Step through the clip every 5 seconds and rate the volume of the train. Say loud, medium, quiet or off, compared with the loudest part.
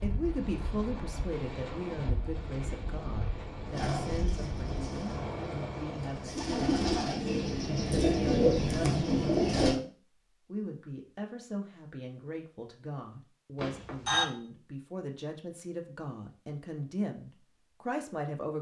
loud, loud, off, off.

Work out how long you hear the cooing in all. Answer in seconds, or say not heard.
6 s.